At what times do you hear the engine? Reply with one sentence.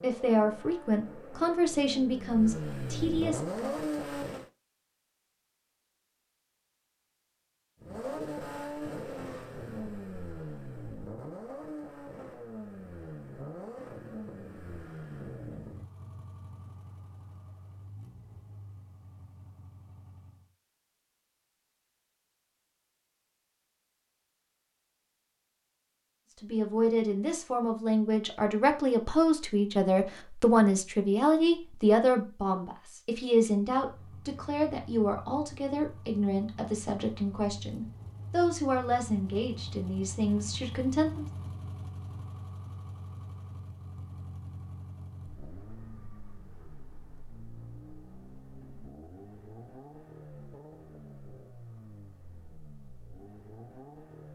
The engine can be heard from 0.0 to 4.5 s, from 7.8 to 20.5 s and from 33.7 to 54.3 s.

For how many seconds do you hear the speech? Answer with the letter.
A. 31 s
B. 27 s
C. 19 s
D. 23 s
C.